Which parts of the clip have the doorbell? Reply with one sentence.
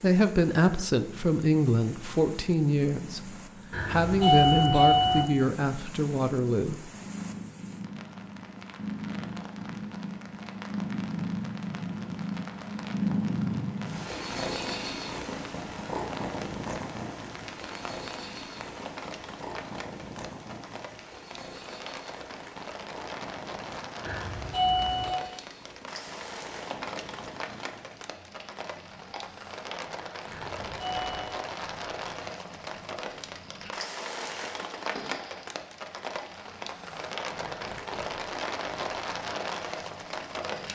You can hear the doorbell from 3.7 to 5.2 s, from 24.1 to 25.2 s and from 30.4 to 31.4 s.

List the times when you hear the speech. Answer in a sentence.
You can hear the speech from 0.0 to 6.9 s.